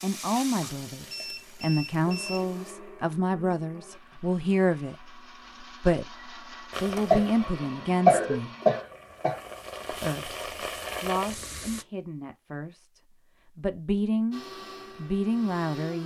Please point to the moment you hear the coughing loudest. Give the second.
8 s.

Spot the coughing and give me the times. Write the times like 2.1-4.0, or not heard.
7.1-9.4.